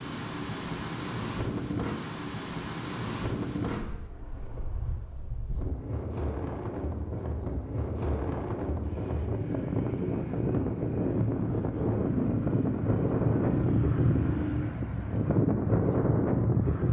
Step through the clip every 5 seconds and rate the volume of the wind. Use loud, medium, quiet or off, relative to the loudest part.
medium, medium, loud, loud.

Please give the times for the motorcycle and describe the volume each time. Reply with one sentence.
You can hear the motorcycle from 8.8 to 14.8 s, getting louder.